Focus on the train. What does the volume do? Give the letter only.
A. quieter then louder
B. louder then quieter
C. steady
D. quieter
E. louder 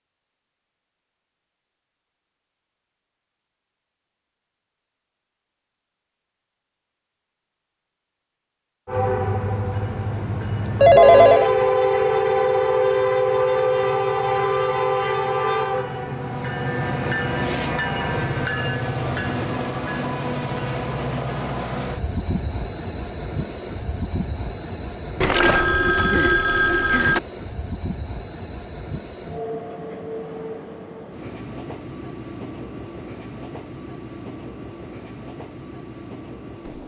D.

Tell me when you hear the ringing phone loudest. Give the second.
11 s.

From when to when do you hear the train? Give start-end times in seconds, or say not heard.
8.8-36.8.